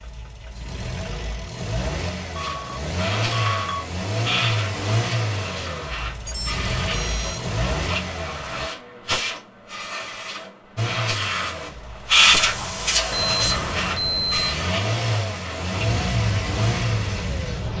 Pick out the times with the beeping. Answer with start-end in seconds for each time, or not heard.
2.4-3.9, 6.2-7.4, 13.1-14.6.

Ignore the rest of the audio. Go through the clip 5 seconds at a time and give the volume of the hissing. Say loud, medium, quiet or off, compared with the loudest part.
medium, medium, loud, medium.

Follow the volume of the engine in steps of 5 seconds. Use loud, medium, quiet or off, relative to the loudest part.
loud, loud, medium, loud.